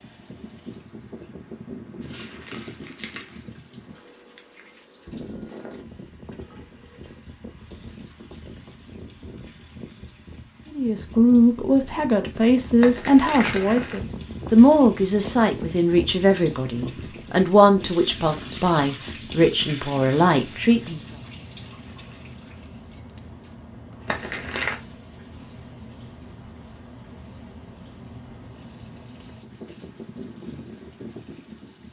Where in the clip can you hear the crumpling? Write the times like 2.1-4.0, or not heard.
2.0-3.4, 12.8-14.0, 24.1-24.8.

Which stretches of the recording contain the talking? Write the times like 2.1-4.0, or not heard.
10.7-21.1.